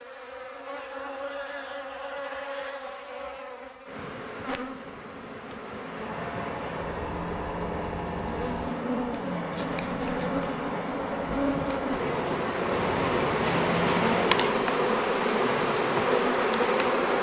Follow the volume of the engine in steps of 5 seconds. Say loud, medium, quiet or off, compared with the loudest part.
off, loud, loud, off.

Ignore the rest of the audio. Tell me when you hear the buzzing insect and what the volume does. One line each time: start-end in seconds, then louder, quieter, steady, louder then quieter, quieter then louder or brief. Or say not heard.
0.0-17.1 louder.